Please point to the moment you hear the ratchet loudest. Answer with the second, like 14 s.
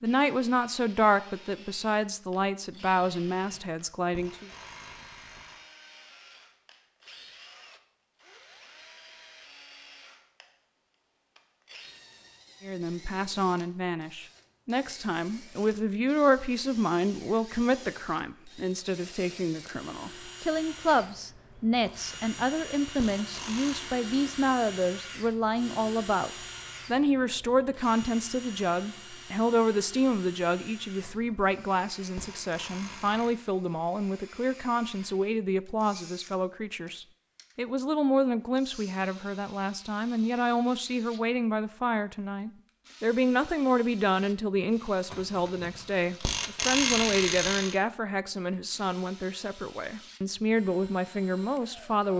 47 s.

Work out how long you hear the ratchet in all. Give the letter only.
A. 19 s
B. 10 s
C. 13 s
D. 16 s
B.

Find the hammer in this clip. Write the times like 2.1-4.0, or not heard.
not heard.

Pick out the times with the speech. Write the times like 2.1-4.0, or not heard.
0.0-4.5, 12.6-52.1.